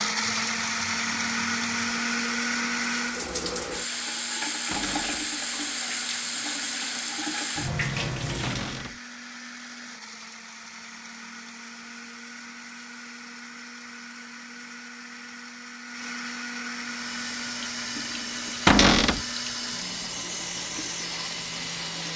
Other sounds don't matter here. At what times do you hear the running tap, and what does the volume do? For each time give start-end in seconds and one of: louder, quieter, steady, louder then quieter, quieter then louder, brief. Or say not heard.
0.2-8.9 louder
16.6-22.1 steady.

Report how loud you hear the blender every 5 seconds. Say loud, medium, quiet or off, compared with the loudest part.
loud, quiet, quiet, medium, medium.